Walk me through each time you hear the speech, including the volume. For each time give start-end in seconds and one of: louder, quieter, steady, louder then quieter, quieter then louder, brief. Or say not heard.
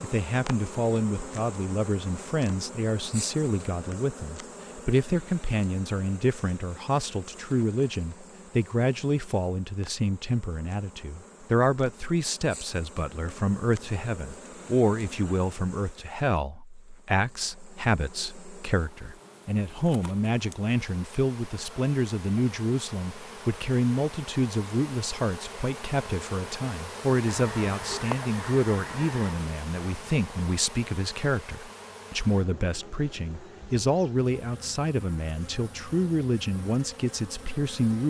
0.0-38.0 steady.